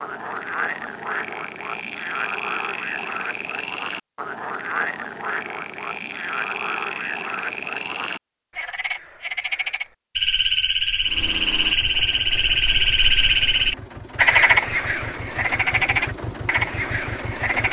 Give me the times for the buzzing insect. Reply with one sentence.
The buzzing insect can't be heard in this clip.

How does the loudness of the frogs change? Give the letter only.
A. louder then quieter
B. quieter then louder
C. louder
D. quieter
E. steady
C.